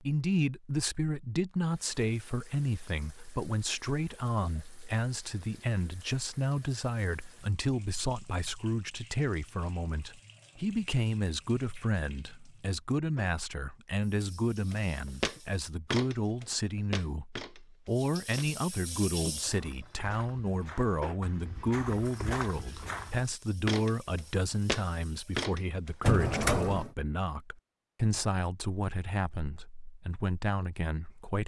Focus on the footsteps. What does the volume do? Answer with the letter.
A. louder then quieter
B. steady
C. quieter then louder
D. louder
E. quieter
C.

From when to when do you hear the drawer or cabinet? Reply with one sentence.
You can hear the drawer or cabinet from 26.0 to 26.9 s.